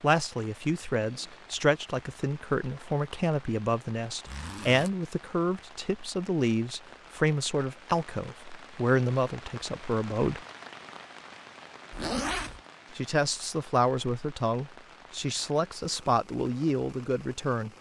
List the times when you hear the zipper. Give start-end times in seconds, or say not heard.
4.2-4.9, 11.9-12.6.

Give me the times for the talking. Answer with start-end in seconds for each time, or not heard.
0.0-10.4, 12.9-17.7.